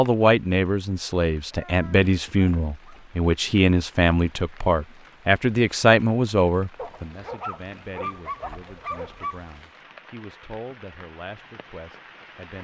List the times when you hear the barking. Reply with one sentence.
The barking can be heard from 1.5 to 3.1 s and from 6.8 to 9.5 s.